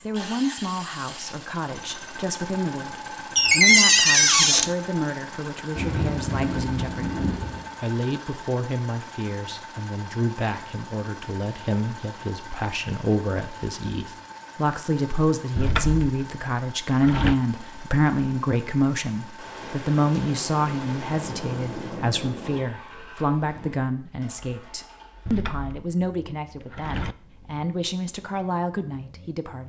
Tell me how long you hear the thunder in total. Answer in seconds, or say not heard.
5 s.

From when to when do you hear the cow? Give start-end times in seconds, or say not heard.
not heard.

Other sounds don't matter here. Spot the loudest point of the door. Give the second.
4 s.